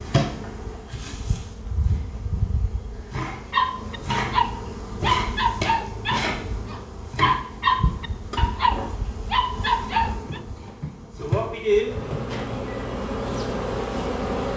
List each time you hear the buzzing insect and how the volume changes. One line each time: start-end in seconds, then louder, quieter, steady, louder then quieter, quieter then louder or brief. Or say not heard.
0.0-14.5 louder.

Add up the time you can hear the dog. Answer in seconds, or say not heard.
7 s.